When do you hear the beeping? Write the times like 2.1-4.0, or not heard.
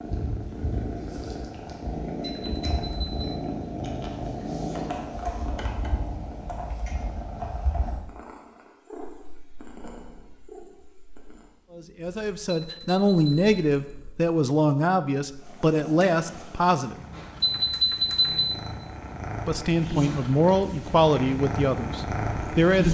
2.4-3.3, 12.6-13.6, 17.4-18.5.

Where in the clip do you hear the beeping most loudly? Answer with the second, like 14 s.
18 s.